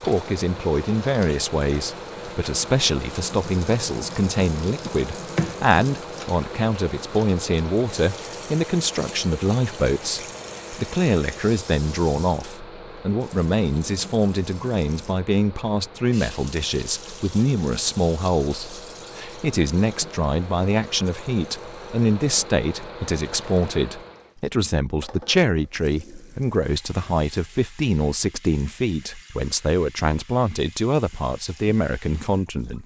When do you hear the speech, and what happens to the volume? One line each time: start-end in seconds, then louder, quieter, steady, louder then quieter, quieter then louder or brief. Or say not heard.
0.0-32.8 steady.